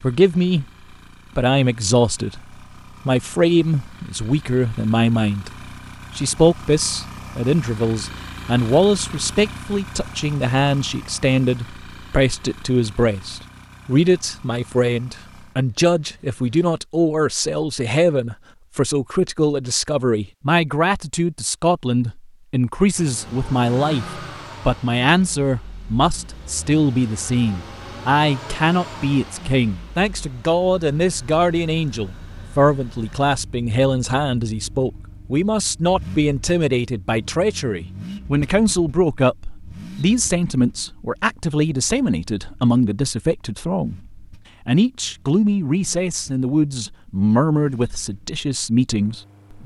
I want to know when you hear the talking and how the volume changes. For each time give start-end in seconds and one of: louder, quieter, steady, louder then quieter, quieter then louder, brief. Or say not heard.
0.0-0.7 brief
1.4-49.6 steady.